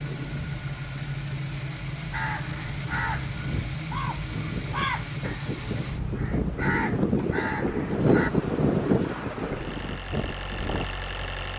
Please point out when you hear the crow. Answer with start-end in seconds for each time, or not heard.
2.1-8.3.